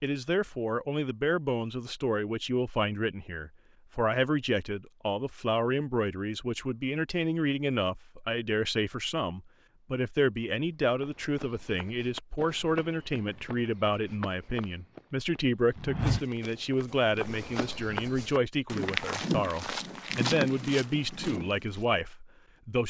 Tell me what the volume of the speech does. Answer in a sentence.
The loudness of the speech stays about the same.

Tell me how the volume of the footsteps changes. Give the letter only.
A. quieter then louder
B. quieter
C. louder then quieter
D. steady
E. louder
E.